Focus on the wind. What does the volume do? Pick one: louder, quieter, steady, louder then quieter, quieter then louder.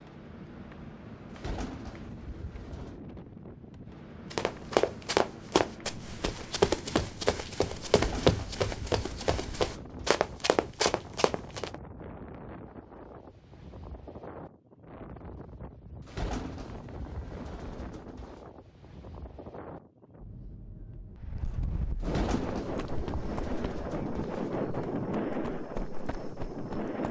louder.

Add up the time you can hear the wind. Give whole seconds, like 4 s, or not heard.
27 s.